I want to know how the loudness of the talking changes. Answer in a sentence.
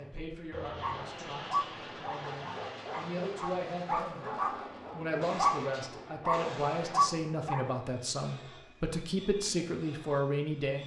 The loudness of the talking goes up.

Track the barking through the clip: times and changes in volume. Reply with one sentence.
You can hear the barking from 0.8 to 7.7 s, getting quieter then louder.